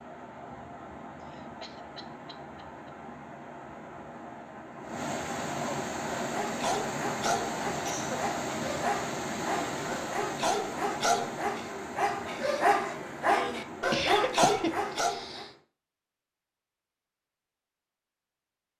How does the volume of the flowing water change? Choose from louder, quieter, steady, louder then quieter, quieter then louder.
louder then quieter.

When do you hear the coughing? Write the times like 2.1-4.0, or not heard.
1.2-2.9, 7.8-8.2, 13.9-15.4.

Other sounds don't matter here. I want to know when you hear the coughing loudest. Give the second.
14 s.